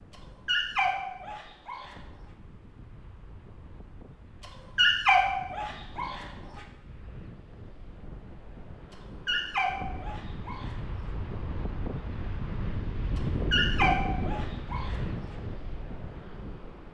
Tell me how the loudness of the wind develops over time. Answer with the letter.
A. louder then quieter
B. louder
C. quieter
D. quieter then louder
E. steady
B.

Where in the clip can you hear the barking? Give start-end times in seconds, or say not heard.
0.5-1.9, 4.8-6.2, 9.2-10.7, 13.2-14.9.